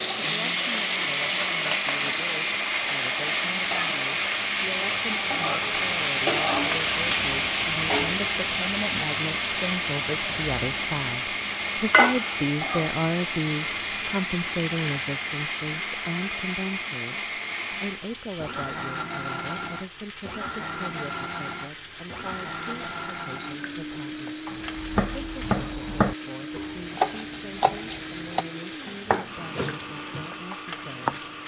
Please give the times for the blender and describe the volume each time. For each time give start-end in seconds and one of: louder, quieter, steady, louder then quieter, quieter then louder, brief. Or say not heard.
0.0-31.4 quieter.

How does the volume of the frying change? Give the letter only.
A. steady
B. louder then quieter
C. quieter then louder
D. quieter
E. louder
D.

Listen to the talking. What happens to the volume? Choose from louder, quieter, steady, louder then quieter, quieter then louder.
louder then quieter.